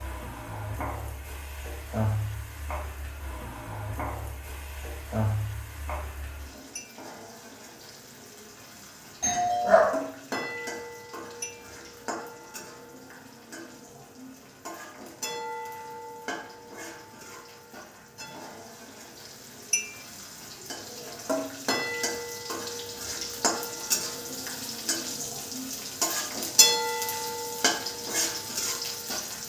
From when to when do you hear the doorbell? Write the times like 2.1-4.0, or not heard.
9.2-9.9.